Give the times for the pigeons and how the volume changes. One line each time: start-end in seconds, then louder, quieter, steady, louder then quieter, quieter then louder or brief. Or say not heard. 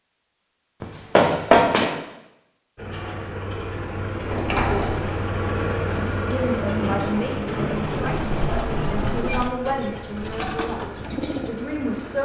4.9-11.5 louder.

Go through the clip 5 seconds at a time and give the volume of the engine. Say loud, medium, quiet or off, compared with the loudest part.
loud, loud, medium.